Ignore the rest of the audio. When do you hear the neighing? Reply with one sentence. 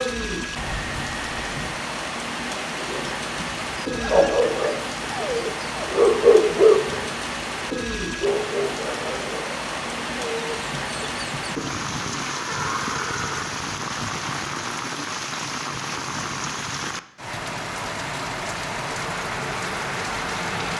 The neighing can be heard from 0.6 to 1.7 s and from 12.3 to 13.5 s.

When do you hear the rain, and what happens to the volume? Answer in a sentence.
The rain can be heard from 0.0 to 20.7 s, at a steady volume.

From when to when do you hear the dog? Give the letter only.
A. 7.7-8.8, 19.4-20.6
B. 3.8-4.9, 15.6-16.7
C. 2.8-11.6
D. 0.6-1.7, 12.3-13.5
C.